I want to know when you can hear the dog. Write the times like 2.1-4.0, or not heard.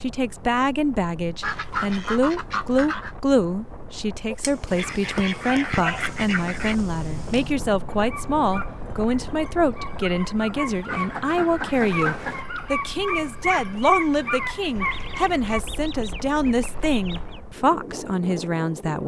4.3-15.6.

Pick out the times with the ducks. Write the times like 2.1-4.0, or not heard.
1.4-3.1, 4.8-6.8, 10.8-12.4, 14.8-17.4.